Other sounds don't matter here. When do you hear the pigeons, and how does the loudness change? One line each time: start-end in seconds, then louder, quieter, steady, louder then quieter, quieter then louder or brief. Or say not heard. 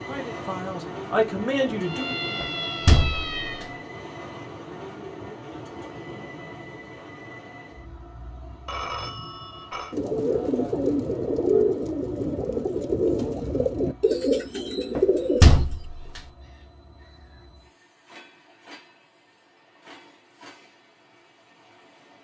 9.9-15.6 steady.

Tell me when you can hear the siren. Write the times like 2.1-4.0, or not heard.
1.8-3.6.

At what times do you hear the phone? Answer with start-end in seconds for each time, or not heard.
8.7-9.9.